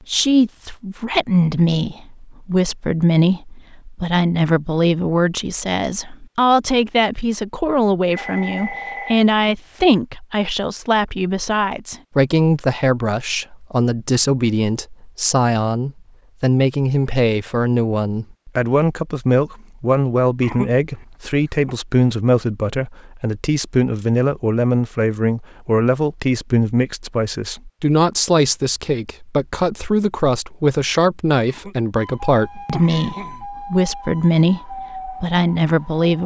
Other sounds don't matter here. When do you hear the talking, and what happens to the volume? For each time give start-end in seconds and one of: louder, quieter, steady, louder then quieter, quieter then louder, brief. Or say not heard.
0.1-36.2 steady.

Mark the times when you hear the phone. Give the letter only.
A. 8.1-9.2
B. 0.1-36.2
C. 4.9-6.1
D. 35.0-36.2
A.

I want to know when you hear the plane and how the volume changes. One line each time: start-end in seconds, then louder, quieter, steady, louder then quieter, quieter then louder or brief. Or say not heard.
not heard.